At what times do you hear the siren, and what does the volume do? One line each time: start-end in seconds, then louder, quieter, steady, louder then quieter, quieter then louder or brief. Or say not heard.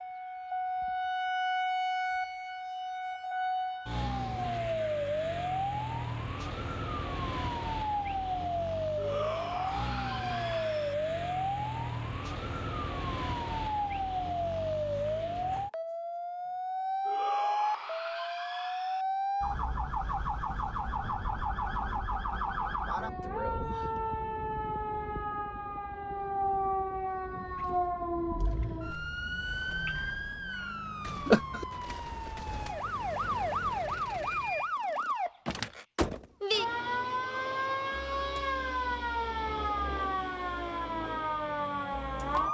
0.0-42.4 steady.